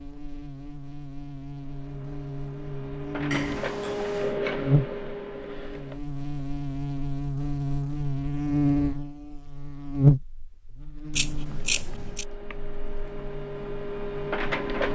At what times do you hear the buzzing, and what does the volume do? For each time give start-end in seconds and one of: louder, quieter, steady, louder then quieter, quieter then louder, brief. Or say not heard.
0.0-14.8 louder then quieter.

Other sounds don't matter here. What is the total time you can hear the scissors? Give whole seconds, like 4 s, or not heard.
2 s.